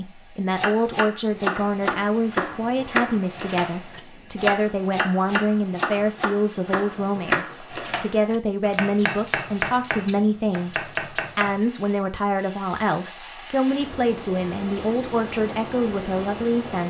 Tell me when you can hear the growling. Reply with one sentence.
The growling can't be heard in this clip.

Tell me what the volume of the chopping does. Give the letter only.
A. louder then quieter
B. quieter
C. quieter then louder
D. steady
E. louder
D.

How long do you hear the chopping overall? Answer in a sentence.
The chopping can be heard for 11 seconds in total.